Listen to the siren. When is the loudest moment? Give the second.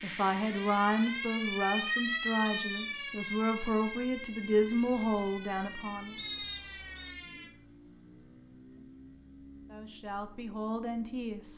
2 s.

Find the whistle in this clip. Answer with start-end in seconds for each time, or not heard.
2.5-3.4, 6.2-7.2.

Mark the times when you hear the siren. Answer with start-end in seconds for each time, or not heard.
0.0-7.5.